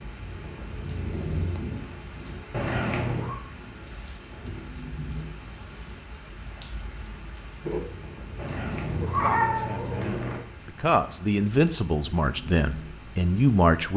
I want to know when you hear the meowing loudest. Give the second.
9 s.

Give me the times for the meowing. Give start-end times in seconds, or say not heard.
2.5-3.4, 8.3-10.4.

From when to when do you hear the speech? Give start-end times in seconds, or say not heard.
9.0-13.9.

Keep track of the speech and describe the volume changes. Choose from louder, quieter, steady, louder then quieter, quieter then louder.
louder.